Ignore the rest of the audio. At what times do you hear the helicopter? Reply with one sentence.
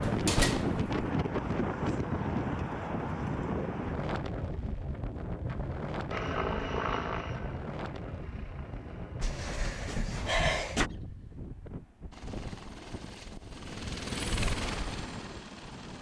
You can hear the helicopter from 6.1 to 9.3 s and from 12.1 to 15.9 s.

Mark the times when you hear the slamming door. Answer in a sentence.
The slamming door can be heard from 0.0 to 0.9 s and from 9.2 to 10.9 s.